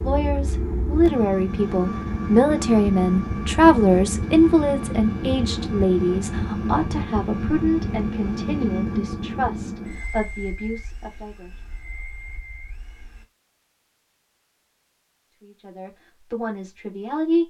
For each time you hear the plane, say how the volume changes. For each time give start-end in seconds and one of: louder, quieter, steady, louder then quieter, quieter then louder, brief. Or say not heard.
0.0-13.2 quieter.